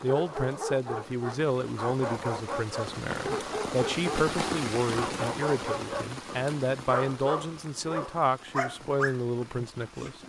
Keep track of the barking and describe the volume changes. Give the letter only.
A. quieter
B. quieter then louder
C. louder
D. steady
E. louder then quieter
D.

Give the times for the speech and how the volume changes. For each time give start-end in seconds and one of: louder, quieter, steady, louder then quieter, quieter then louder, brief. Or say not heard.
0.0-10.2 steady.